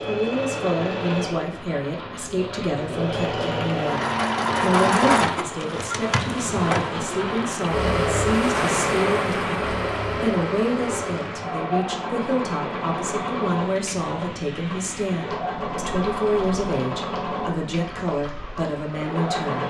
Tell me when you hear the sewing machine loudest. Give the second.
5 s.